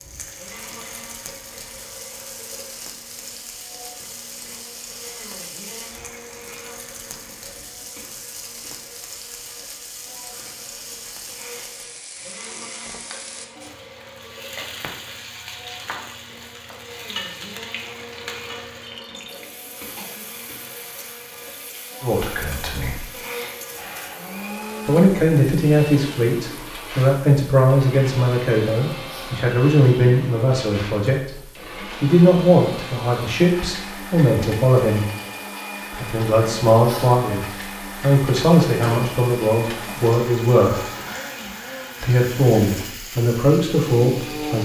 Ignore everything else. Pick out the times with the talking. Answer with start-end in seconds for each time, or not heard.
22.0-23.1, 24.9-35.0, 35.9-40.9, 42.0-44.6.